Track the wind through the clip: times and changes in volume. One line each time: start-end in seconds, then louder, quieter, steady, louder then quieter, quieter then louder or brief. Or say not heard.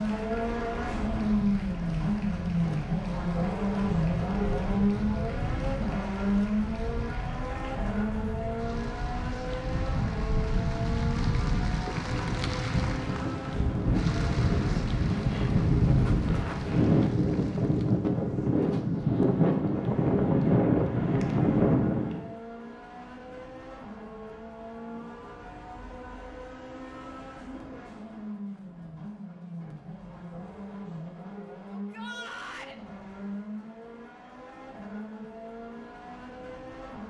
0.1-22.3 louder.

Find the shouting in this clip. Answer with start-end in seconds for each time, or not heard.
31.7-32.8.